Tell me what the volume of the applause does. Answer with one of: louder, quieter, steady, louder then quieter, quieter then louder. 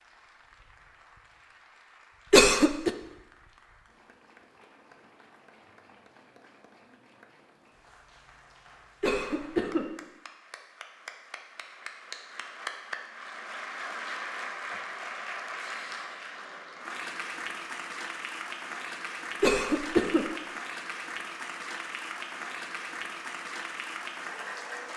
louder.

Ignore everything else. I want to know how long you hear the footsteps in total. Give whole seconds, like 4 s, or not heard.
not heard.